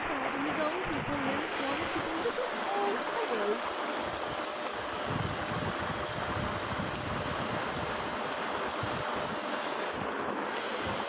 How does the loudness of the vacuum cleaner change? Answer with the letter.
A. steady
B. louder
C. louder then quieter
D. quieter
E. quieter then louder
A.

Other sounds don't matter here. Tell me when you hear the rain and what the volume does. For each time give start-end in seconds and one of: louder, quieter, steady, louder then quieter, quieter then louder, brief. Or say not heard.
0.0-11.0 steady.